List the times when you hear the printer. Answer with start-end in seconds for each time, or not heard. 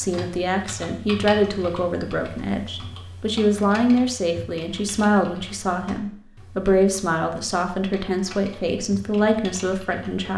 not heard.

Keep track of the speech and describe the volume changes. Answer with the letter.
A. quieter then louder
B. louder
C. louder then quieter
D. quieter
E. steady
E.